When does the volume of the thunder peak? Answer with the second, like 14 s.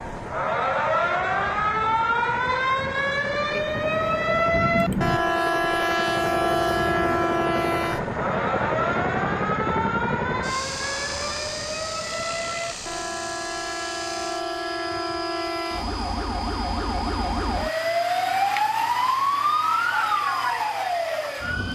5 s.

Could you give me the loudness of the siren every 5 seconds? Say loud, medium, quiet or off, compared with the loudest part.
loud, loud, medium, loud, loud.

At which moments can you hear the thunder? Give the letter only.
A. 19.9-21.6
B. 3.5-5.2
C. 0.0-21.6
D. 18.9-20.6
B.